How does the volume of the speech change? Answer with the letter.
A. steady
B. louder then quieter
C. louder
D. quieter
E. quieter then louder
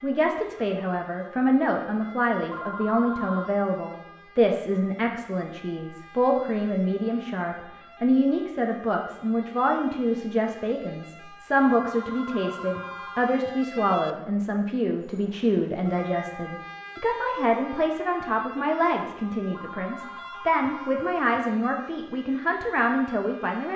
A.